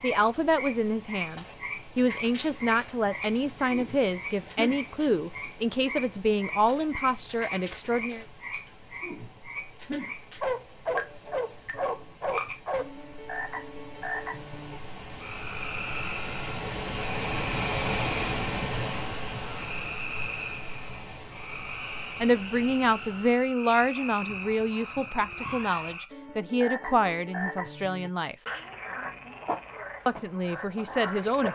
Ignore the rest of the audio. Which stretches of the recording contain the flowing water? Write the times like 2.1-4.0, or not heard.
0.0-23.4.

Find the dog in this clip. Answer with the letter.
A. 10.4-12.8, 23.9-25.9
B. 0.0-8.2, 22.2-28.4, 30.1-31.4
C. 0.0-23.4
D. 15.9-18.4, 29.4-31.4
A.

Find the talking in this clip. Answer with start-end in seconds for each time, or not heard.
0.0-8.2, 22.2-28.4, 30.1-31.4.